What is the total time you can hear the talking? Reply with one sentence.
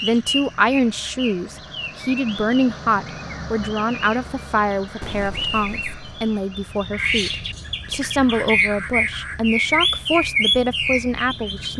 The talking can be heard for 12 seconds in total.